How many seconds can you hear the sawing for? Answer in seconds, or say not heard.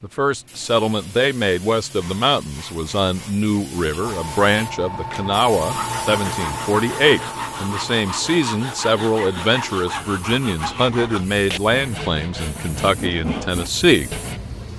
9 s.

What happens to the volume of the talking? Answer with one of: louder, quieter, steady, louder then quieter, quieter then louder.
steady.